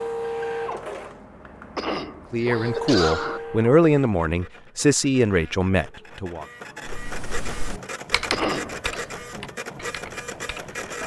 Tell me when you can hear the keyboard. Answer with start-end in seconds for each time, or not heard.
6.8-11.0.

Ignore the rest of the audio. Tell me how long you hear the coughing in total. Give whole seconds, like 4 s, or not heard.
2 s.